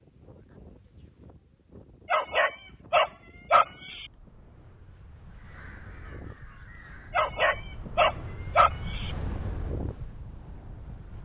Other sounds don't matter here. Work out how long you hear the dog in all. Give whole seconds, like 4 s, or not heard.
4 s.